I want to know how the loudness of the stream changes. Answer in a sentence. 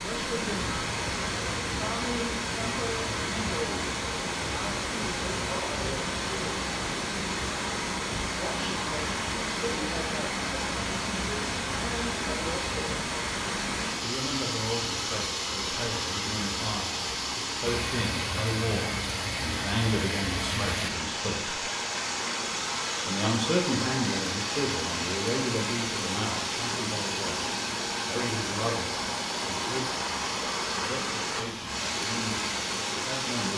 The loudness of the stream stays about the same.